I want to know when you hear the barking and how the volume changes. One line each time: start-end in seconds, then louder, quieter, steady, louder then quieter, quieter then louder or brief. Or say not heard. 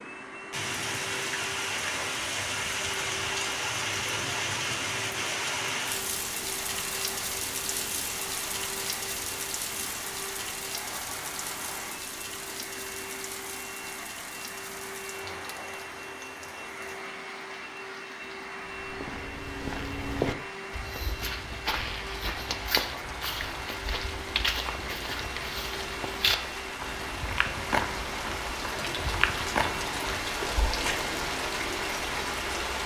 not heard.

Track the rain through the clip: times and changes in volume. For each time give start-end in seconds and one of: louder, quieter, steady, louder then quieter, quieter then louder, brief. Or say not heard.
0.0-32.8 quieter then louder.